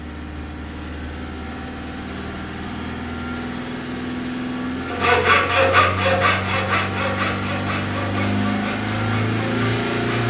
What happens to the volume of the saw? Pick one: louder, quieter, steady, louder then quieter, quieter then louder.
quieter.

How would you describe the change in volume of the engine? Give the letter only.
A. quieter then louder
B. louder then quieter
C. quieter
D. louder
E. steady
D.